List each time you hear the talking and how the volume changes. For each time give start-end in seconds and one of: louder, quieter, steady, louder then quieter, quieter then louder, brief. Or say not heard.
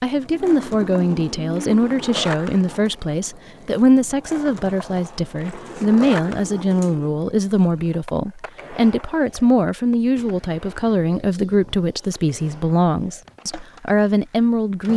0.0-14.9 steady.